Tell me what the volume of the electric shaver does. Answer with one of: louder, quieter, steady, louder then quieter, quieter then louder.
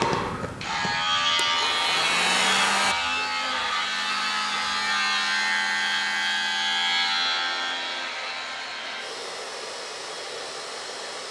quieter.